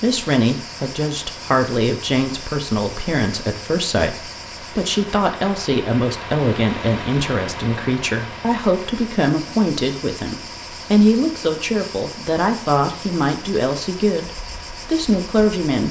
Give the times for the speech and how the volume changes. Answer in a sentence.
The speech can be heard from 0.0 to 15.8 s, at a steady volume.